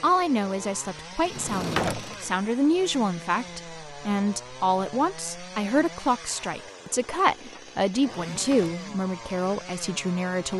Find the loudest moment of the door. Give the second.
2 s.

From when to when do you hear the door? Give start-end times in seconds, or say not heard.
1.2-2.4, 8.2-8.9.